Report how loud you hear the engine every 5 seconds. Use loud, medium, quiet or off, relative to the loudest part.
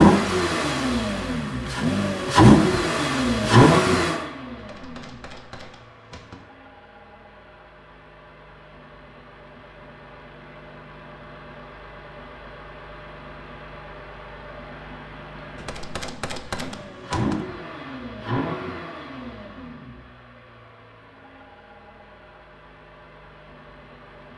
loud, quiet, quiet, quiet, quiet.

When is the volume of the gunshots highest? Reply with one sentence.
The volume of the gunshots peaks at 16 seconds.